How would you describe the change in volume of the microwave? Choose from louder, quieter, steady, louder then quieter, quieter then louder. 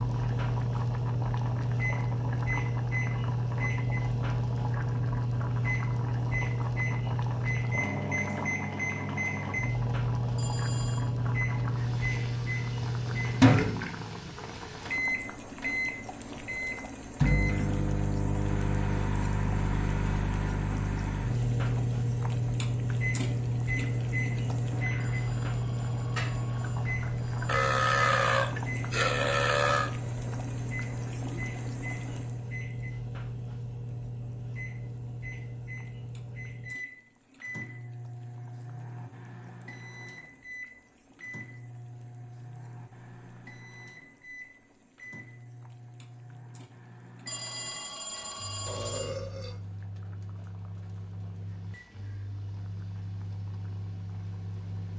quieter.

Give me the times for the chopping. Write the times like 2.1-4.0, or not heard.
not heard.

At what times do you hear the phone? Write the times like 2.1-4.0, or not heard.
10.3-11.1, 25.0-27.5, 47.2-49.2.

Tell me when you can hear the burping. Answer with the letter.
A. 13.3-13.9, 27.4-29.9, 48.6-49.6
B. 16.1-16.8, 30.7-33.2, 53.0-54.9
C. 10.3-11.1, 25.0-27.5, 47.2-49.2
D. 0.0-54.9
A.